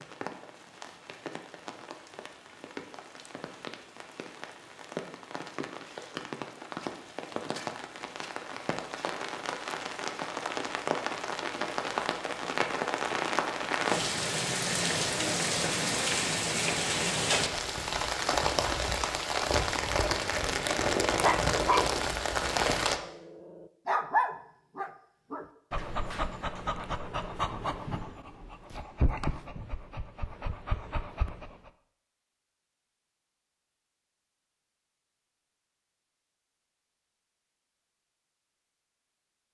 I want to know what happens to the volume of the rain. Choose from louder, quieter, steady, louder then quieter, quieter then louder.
louder.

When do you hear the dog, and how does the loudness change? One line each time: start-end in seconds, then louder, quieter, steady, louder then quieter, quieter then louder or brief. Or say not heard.
21.1-21.9 brief
22.9-31.7 quieter.